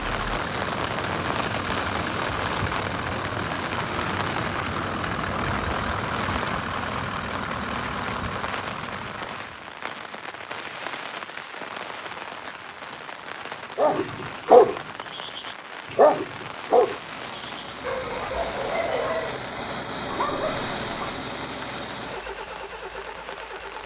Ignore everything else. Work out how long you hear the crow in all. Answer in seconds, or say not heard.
not heard.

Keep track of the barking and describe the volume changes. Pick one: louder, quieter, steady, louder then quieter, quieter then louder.
quieter.